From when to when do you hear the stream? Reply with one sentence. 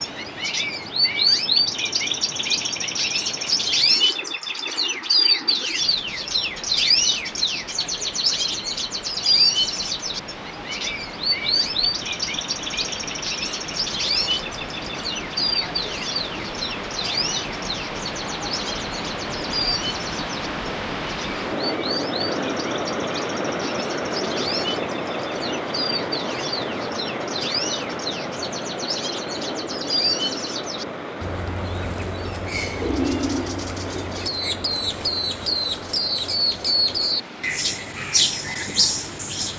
The stream can be heard from 0.0 to 39.5 s.